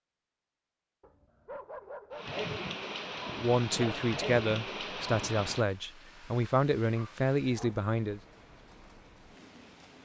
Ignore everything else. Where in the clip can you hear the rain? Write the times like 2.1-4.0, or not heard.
2.1-10.0.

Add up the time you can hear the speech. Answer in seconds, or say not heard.
5 s.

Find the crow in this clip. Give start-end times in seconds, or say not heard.
not heard.